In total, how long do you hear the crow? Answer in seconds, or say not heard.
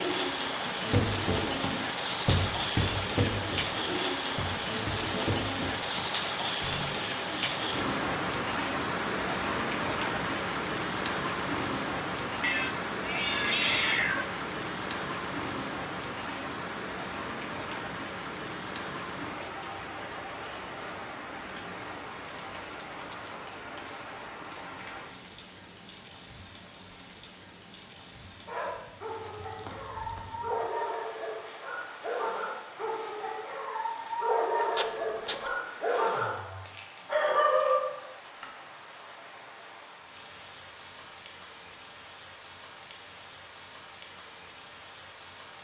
not heard.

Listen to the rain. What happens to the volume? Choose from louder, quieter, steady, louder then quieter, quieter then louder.
quieter.